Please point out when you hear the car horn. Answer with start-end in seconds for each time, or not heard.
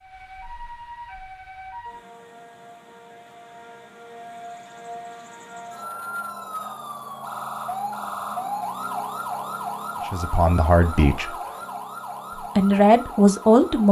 not heard.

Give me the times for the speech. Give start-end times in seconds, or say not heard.
10.1-11.3, 12.6-13.8.